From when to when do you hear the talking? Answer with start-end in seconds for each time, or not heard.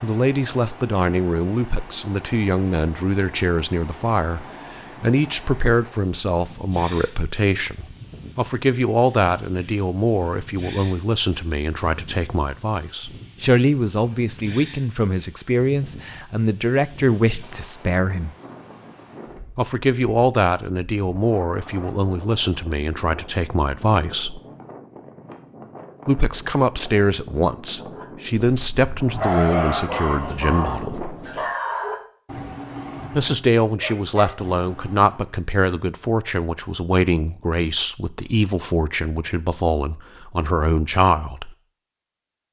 0.0-18.3, 19.6-24.4, 26.1-31.1, 33.1-41.5.